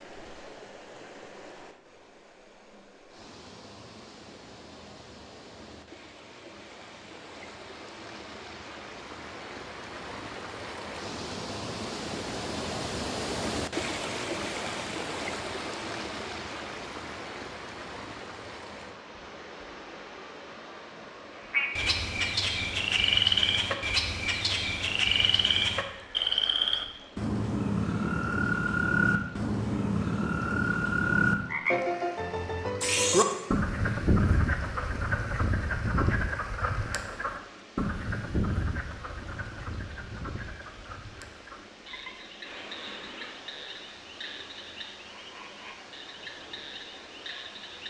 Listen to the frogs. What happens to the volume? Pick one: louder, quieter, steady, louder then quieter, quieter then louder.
quieter.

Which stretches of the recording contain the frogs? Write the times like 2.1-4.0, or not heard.
21.5-47.8.